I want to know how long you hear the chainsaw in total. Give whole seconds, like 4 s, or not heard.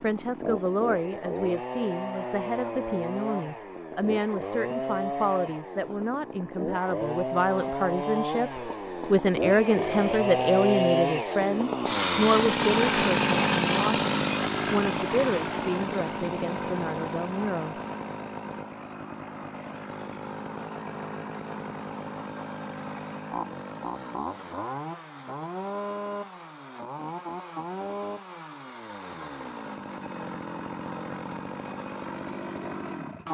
33 s.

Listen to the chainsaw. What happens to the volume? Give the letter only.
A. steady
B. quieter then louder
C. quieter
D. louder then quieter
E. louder
D.